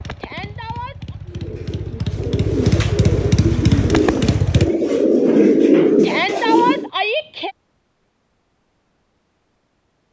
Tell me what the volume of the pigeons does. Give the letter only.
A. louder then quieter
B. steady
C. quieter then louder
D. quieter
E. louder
E.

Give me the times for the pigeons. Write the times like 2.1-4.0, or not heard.
1.2-6.9.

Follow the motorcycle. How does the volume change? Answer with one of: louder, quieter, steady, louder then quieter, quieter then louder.
louder.